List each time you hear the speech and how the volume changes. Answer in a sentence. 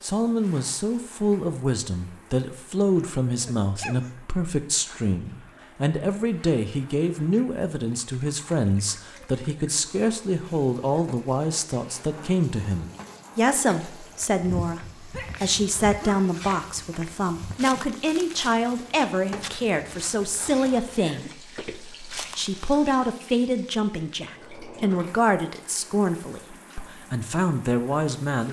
You can hear the speech from 0.0 to 28.4 s, at a steady volume.